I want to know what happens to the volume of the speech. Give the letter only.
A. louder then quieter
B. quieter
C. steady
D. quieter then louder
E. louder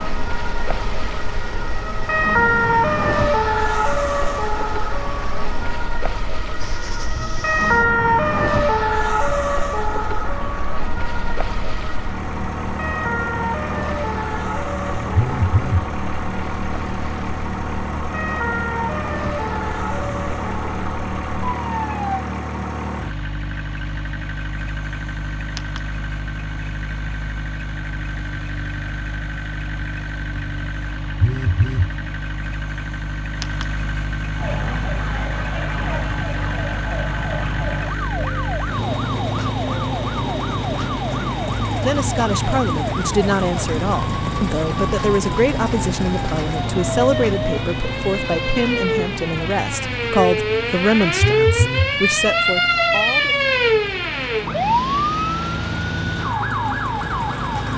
C.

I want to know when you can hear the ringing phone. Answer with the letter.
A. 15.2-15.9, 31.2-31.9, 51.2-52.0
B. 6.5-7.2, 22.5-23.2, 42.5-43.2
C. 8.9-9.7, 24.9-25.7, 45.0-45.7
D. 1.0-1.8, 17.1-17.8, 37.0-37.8
A.